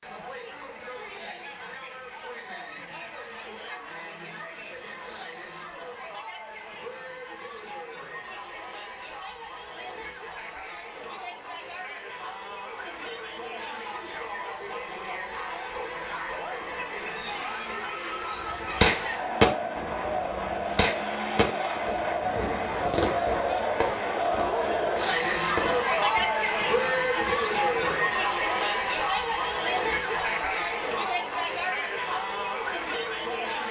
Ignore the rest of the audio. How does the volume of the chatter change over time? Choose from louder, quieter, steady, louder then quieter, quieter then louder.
louder.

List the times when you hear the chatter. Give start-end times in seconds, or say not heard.
0.0-33.6.